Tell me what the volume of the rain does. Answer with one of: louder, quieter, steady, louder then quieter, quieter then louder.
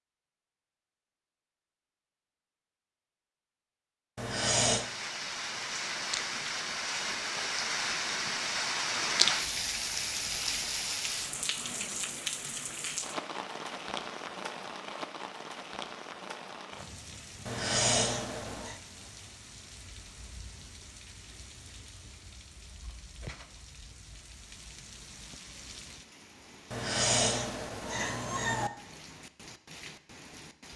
quieter.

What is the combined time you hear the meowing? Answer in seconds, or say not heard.
4 s.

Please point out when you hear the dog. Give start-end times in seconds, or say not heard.
not heard.